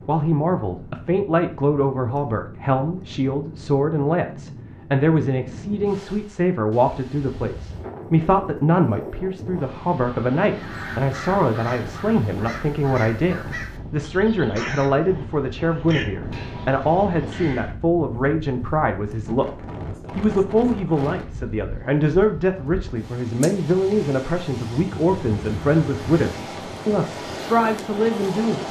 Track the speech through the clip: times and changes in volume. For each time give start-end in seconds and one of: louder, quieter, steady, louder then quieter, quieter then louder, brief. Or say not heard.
0.0-28.6 steady.